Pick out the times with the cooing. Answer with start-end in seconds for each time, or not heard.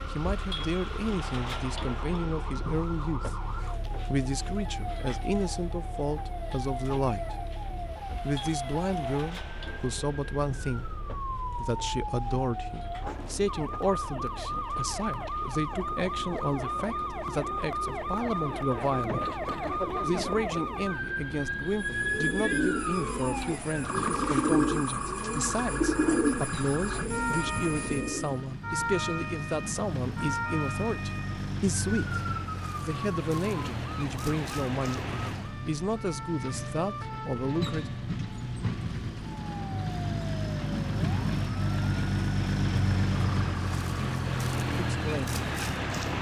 21.7-28.4.